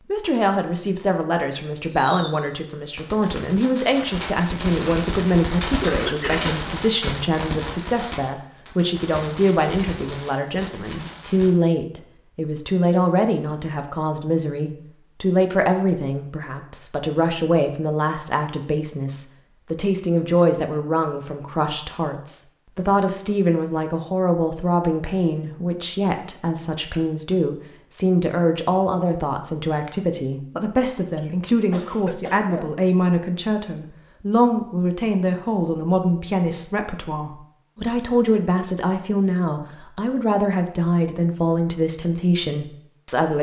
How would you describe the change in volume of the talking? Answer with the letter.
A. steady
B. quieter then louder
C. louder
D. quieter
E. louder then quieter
A.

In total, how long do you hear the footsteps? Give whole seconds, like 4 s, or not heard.
not heard.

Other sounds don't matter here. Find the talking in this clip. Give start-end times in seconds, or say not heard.
0.1-43.3.